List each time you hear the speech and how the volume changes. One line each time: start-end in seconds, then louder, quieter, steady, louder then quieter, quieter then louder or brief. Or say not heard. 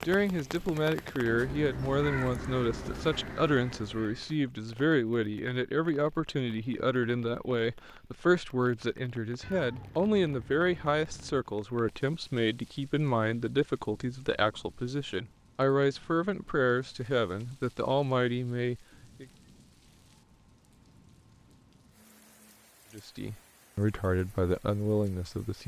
0.0-19.2 steady
22.9-25.6 brief.